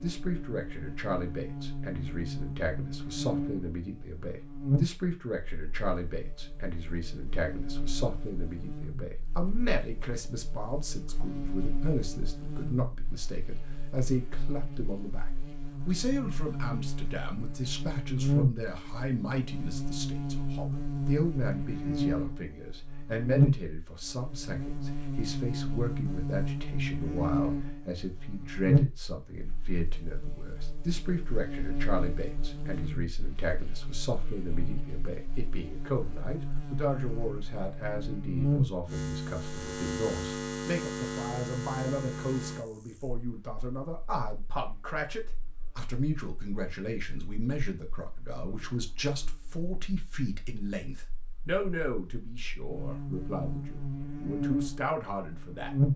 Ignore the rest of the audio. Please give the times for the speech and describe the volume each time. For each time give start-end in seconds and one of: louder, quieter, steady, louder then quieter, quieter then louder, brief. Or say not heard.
0.0-55.8 steady.